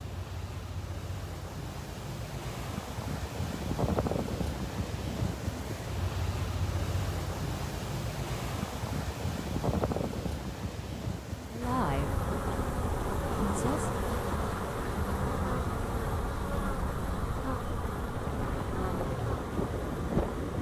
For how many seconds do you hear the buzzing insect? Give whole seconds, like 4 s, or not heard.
9 s.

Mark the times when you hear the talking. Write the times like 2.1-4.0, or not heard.
11.5-12.2, 13.4-13.9.